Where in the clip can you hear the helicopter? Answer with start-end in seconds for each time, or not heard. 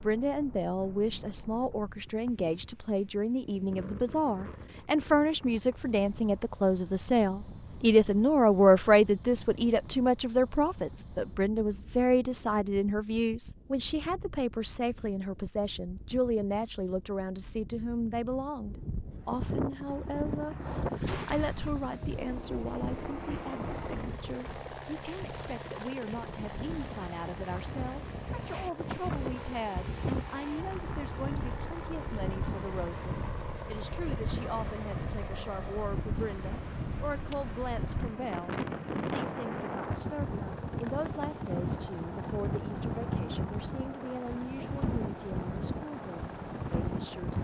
19.5-47.3.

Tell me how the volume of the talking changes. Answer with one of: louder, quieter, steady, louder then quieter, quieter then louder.
quieter.